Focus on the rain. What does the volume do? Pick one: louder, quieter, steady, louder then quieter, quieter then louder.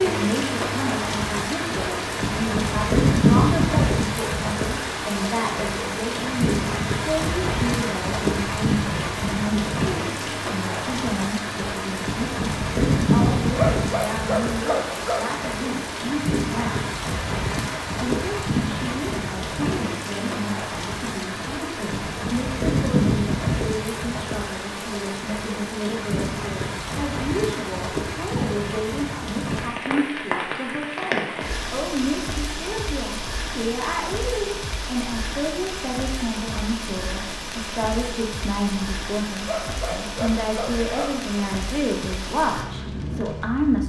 quieter.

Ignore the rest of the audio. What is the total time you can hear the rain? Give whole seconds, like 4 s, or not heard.
44 s.